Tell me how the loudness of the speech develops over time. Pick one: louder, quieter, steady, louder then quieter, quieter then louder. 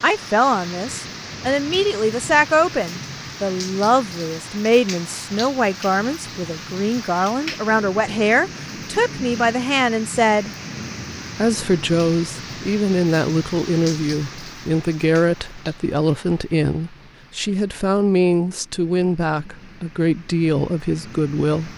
steady.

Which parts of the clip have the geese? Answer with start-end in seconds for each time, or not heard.
not heard.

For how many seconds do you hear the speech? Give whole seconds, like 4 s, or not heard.
21 s.